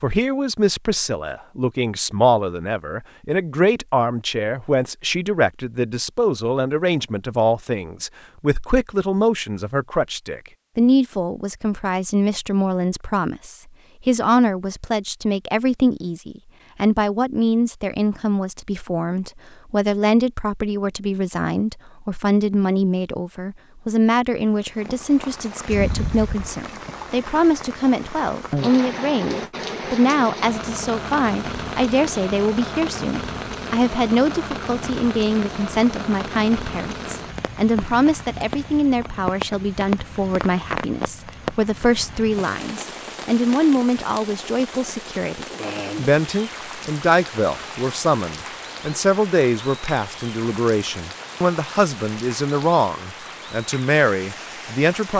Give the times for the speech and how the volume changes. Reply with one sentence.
You can hear the speech from 0.0 to 55.1 s, at a steady volume.